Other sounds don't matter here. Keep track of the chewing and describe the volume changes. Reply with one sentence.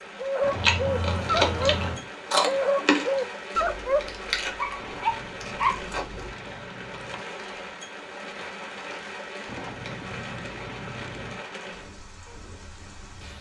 The volume of the chewing goes down.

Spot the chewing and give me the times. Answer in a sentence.
You can hear the chewing from 0.5 to 6.3 s.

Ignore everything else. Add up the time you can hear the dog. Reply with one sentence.
You can hear the dog for 5 seconds altogether.